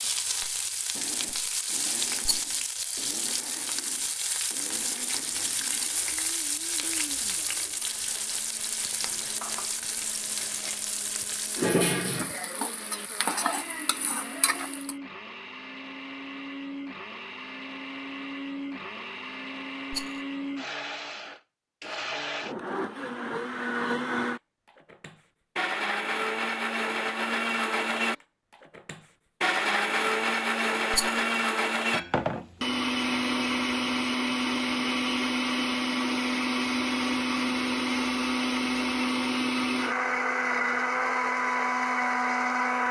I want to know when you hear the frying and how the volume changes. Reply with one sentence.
You can hear the frying from 0.0 to 14.9 s, at a steady volume.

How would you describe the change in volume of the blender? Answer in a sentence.
The volume of the blender goes up.